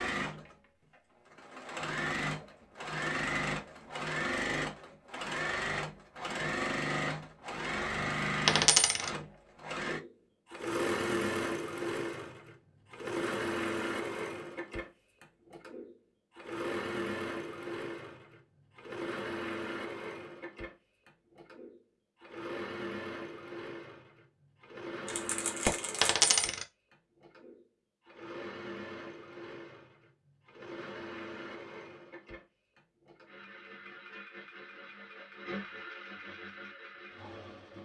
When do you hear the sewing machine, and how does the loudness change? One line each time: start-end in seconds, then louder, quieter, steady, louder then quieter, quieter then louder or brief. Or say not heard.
0.0-37.8 quieter.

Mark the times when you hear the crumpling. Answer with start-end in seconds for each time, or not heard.
25.1-26.3.